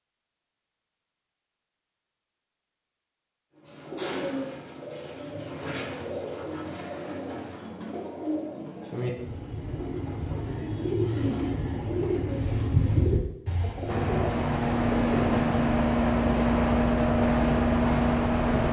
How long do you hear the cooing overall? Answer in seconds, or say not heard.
12 s.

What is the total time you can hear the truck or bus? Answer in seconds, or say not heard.
5 s.